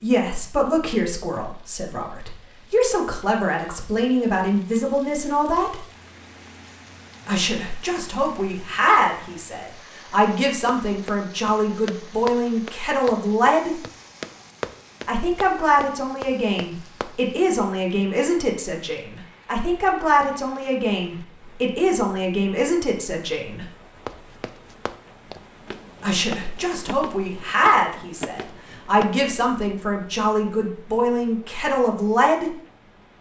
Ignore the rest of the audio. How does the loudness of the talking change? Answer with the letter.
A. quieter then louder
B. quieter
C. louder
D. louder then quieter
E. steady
E.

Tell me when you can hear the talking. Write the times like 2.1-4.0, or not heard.
0.0-5.8, 7.2-13.8, 15.1-23.6, 26.0-32.5.